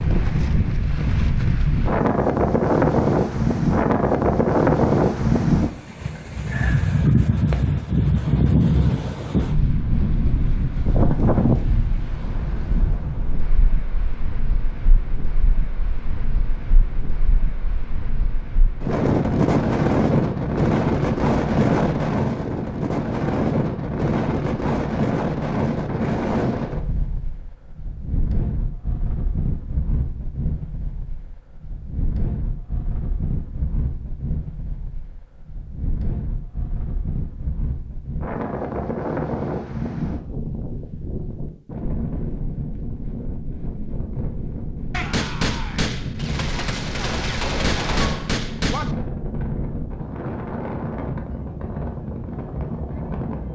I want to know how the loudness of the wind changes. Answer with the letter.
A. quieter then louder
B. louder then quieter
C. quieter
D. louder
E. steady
C.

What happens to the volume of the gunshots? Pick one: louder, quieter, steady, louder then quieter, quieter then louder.
quieter then louder.